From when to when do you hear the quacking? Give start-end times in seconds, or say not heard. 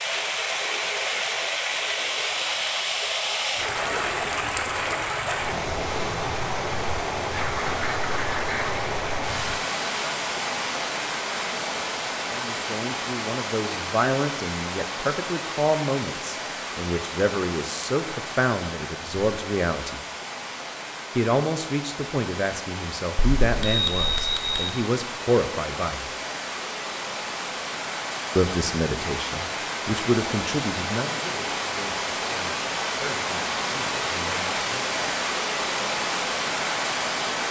7.3-8.8.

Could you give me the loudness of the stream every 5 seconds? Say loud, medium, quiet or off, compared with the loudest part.
loud, loud, loud, medium, medium, medium, loud, loud.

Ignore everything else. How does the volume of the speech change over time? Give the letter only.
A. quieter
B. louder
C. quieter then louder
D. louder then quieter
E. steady
A.